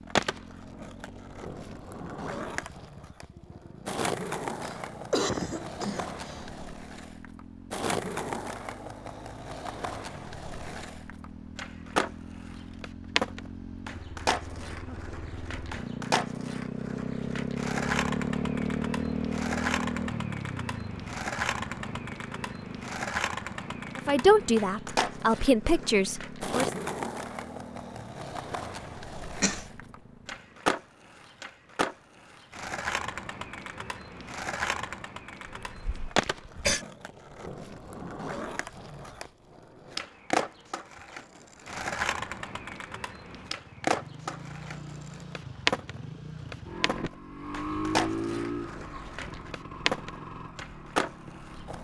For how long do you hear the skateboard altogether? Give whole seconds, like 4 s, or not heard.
52 s.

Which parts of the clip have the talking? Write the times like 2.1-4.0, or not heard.
23.9-26.7.